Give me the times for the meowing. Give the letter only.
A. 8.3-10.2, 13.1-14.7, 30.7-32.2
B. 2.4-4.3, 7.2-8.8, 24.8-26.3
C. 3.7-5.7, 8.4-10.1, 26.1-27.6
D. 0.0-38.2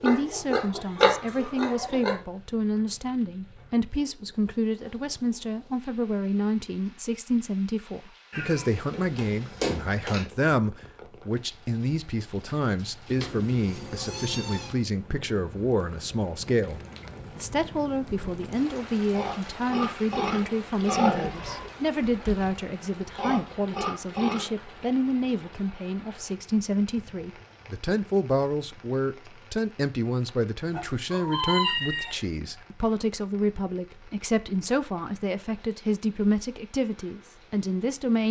A.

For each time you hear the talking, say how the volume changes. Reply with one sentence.
You can hear the talking from 0.0 to 38.2 s, at a steady volume.